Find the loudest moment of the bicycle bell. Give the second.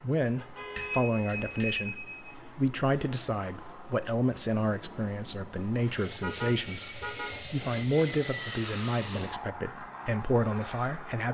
1 s.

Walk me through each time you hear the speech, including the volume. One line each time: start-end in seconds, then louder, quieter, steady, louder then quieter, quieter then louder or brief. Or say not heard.
0.0-11.3 steady.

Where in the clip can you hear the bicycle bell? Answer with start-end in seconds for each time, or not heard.
0.8-2.3.